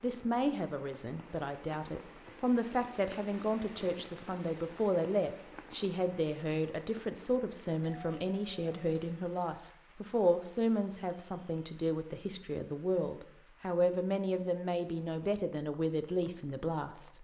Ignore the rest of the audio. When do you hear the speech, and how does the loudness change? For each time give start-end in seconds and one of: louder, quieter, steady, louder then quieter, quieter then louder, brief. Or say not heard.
0.0-17.2 steady.